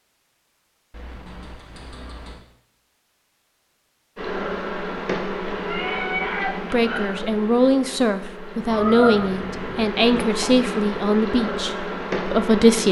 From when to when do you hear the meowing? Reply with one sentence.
You can hear the meowing from 0.9 to 2.4 s, from 5.7 to 6.8 s and from 8.7 to 9.9 s.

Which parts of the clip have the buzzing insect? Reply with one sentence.
The buzzing insect can be heard from 4.2 to 12.8 s.